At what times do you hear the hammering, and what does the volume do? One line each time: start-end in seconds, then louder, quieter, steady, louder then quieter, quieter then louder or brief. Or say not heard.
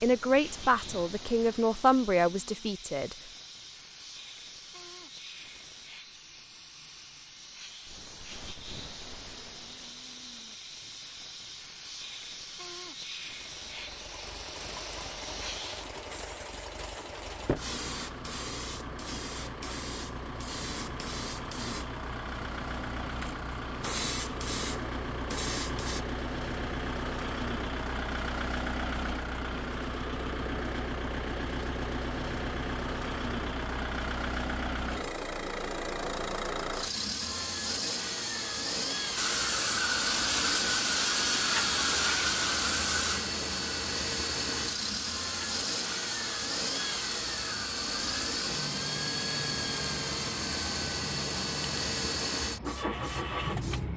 not heard.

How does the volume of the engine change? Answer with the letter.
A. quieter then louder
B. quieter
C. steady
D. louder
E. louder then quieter
D.